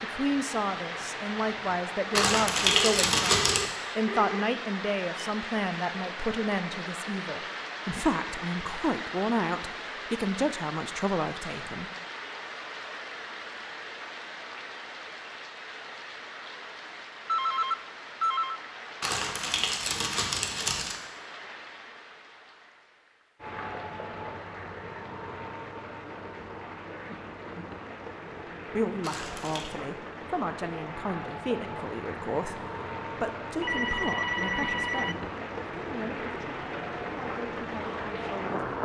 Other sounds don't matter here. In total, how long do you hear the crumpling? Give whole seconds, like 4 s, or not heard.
4 s.